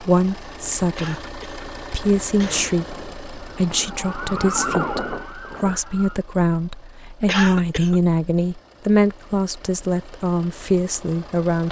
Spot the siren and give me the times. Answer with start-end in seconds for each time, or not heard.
2.8-6.2.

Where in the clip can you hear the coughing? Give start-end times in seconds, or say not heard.
0.9-2.7, 7.2-8.0.